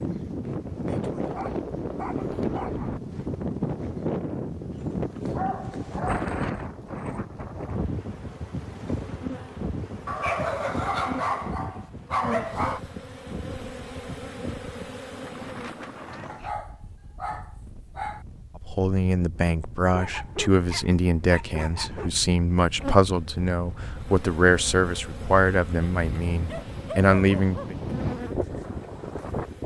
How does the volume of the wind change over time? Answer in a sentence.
The volume of the wind goes down, then up.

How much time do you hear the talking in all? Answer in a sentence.
The talking can be heard for 9 seconds in total.